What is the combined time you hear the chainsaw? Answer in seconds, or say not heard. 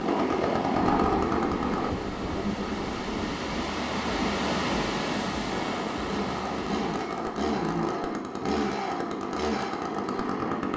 7 s.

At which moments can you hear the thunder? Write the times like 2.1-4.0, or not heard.
0.8-3.5.